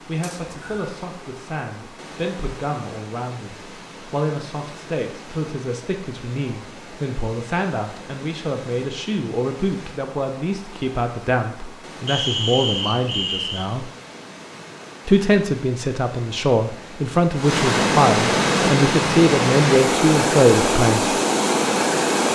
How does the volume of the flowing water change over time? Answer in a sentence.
The volume of the flowing water goes up.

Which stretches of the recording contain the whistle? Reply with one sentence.
You can hear the whistle from 0.2 to 0.8 s and from 12.1 to 13.7 s.